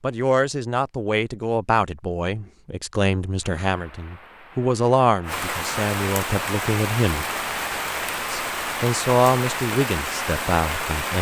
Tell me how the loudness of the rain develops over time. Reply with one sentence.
The volume of the rain goes up.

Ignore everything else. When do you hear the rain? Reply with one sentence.
The rain can be heard from 3.4 to 11.1 s.